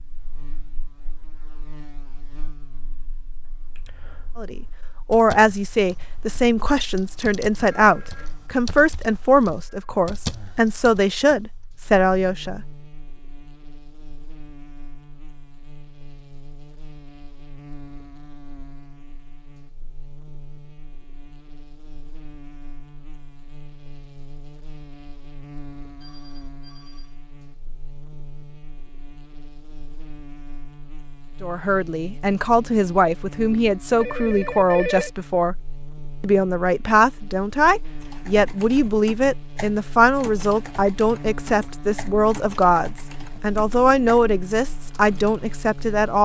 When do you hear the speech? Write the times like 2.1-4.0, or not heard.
4.3-12.6, 31.4-35.5, 36.2-46.2.